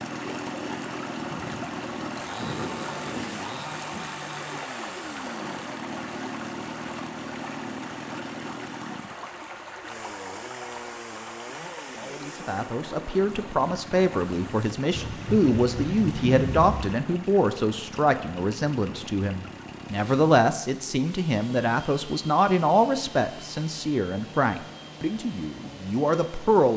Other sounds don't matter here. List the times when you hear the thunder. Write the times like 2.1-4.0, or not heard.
1.3-4.2, 14.9-16.9.